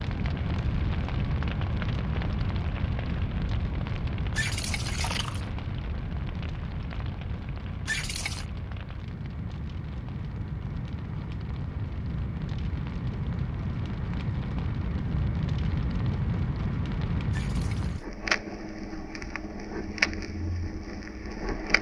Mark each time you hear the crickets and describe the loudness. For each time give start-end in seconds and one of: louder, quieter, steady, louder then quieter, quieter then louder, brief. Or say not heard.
not heard.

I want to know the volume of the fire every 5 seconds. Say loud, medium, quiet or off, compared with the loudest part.
loud, medium, loud, loud, loud.